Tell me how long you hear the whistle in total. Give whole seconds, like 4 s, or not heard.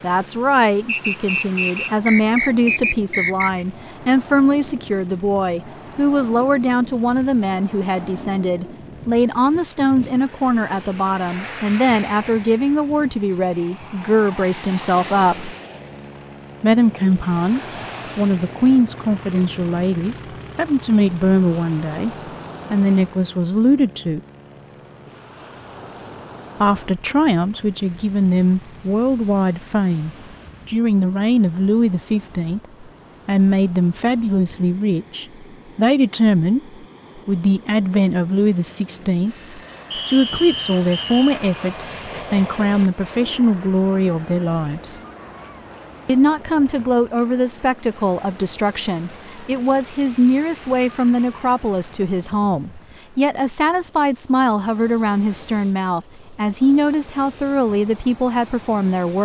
4 s.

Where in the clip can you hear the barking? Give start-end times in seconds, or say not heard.
not heard.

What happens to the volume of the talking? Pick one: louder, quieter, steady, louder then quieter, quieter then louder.
steady.